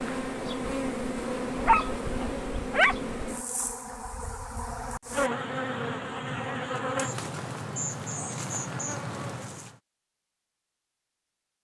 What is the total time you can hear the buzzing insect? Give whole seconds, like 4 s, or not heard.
10 s.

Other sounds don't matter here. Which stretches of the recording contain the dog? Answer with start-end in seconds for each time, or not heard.
1.5-3.0.